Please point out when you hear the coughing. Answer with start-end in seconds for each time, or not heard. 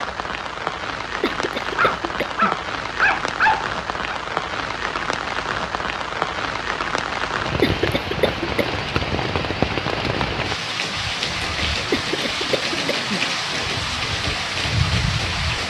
1.2-2.5, 7.6-8.7, 11.9-13.2.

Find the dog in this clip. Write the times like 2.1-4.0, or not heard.
1.8-4.2.